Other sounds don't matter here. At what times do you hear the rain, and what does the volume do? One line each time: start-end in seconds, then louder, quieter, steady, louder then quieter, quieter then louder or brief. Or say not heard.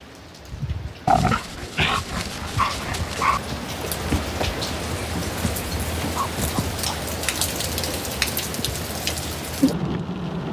0.0-10.4 louder.